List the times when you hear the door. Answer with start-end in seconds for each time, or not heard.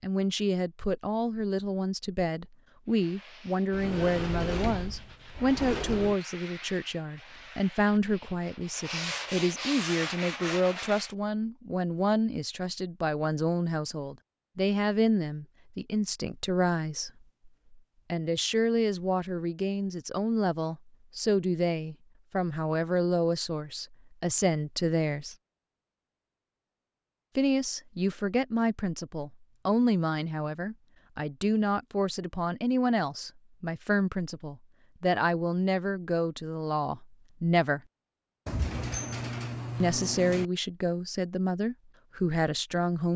3.7-6.2, 38.5-40.5.